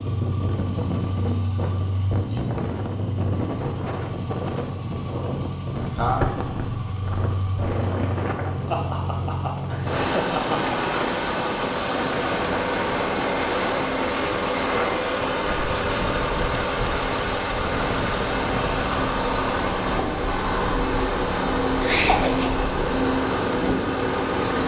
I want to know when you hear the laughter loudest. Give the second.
22 s.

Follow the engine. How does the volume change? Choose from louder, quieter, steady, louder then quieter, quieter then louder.
louder.